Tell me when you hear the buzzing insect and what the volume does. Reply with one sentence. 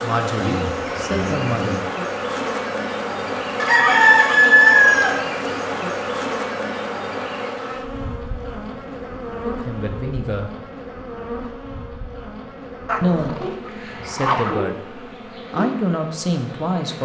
You can hear the buzzing insect from 0.0 to 17.0 s, getting quieter.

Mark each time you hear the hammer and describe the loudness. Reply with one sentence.
You can't hear the hammer here.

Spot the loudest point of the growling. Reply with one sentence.
The volume of the growling peaks at 14 seconds.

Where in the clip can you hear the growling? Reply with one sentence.
The growling can be heard from 0.3 to 1.9 s and from 12.8 to 14.6 s.